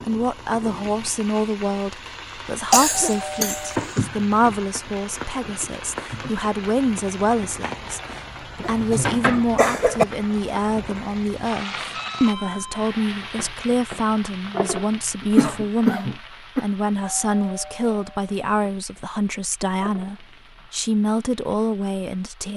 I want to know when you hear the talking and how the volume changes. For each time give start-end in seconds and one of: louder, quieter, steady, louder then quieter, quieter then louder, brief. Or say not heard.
0.0-22.5 steady.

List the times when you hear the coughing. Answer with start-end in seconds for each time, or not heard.
2.7-4.0, 8.7-10.1, 15.2-16.6.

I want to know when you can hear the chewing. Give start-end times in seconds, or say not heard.
not heard.